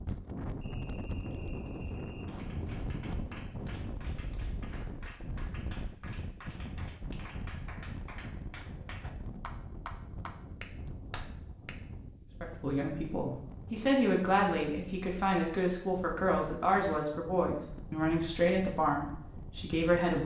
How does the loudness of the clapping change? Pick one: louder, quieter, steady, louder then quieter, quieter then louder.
louder.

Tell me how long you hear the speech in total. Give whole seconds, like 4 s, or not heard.
8 s.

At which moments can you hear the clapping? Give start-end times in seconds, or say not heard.
2.2-11.8.